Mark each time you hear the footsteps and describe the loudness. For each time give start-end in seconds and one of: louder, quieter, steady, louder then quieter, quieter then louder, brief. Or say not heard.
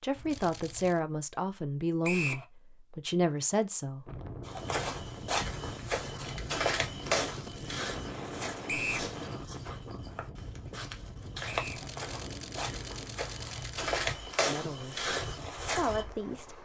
4.5-16.1 quieter then louder.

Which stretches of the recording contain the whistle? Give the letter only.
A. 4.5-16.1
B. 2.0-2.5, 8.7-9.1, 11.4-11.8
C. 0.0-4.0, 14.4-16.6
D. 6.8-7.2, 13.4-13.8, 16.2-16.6
B.